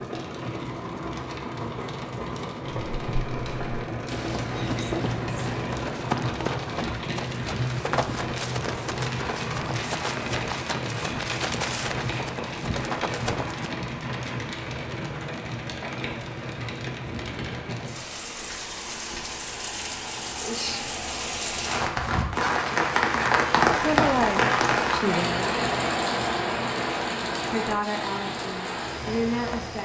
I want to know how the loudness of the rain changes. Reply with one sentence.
The volume of the rain goes up.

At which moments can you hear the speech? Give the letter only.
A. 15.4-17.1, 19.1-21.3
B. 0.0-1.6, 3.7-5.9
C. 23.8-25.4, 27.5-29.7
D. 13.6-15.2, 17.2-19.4
C.